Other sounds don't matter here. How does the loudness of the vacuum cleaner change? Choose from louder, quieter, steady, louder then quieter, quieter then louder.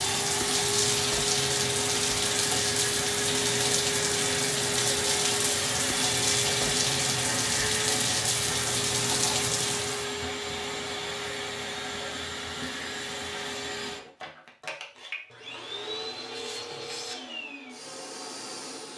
quieter.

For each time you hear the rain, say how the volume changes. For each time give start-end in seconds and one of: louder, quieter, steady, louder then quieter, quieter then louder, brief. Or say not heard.
0.0-10.2 steady.